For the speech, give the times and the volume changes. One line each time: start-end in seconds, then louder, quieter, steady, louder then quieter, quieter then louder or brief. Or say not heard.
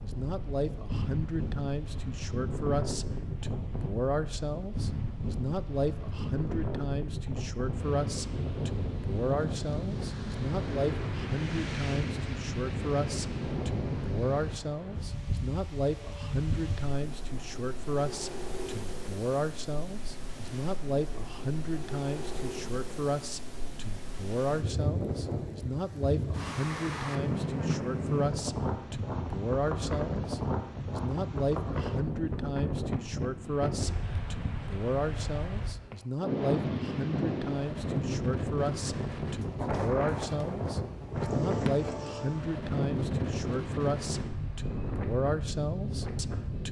0.0-46.6 steady.